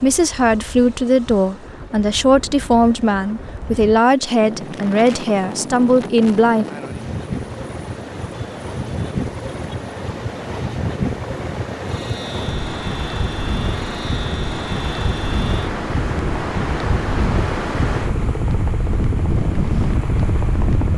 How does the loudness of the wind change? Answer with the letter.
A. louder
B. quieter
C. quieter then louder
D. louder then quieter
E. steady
A.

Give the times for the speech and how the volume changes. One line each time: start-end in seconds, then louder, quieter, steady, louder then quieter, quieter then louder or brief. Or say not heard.
0.0-6.7 steady.